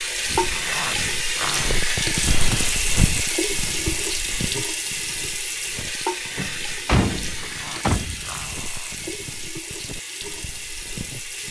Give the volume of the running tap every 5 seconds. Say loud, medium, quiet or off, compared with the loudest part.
loud, medium, medium.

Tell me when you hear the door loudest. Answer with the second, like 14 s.
7 s.